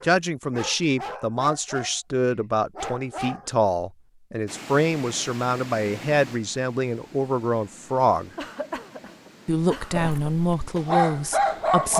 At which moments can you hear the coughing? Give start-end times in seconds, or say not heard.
8.3-10.3.